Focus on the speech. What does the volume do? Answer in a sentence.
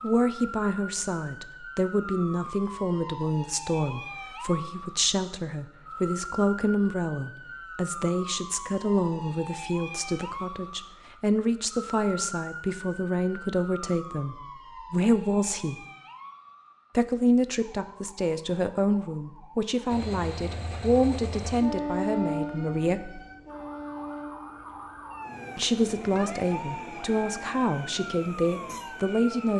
The loudness of the speech stays about the same.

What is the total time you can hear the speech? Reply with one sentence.
You can hear the speech for 26 seconds altogether.